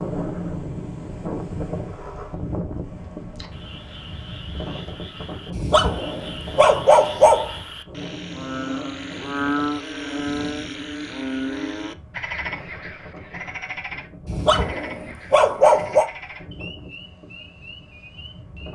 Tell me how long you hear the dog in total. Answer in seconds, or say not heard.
4 s.